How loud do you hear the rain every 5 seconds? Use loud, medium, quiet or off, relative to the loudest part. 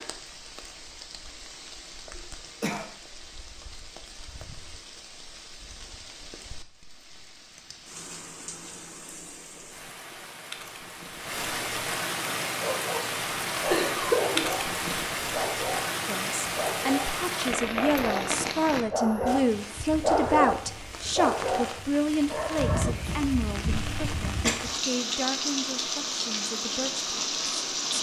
quiet, quiet, loud, loud, medium, loud.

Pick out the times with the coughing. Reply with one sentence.
You can hear the coughing from 2.1 to 2.9 s, from 13.7 to 14.4 s and from 23.6 to 24.6 s.